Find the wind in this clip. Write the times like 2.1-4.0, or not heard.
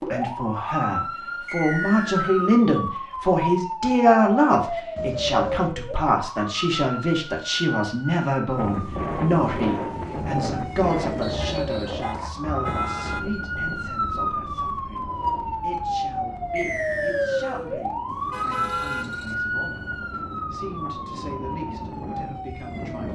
8.5-23.1.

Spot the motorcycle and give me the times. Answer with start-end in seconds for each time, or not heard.
not heard.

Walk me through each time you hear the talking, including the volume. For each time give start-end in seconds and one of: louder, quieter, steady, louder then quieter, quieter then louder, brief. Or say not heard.
0.1-19.9 quieter
20.5-23.1 brief.